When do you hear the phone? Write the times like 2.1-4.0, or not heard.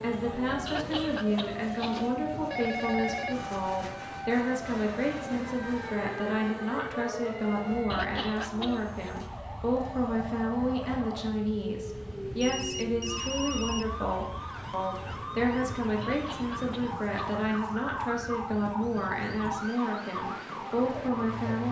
2.5-3.4, 11.9-13.9.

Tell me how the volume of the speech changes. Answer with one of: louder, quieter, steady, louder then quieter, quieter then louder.
steady.